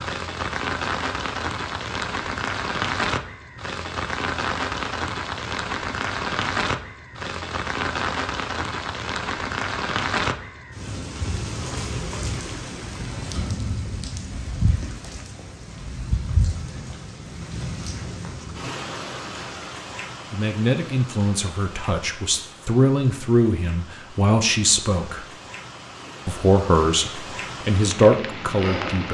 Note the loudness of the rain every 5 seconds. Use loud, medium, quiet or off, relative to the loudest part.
loud, loud, loud, medium, quiet, medium.